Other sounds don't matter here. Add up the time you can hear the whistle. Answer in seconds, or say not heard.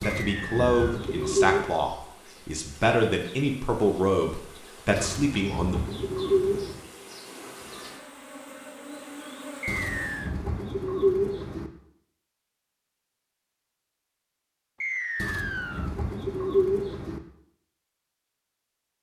3 s.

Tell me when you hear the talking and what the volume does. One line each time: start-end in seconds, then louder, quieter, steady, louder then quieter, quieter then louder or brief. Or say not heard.
0.0-5.8 steady.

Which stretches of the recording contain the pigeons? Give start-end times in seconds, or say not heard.
0.0-1.6, 5.0-6.8, 9.7-11.7, 15.2-17.2.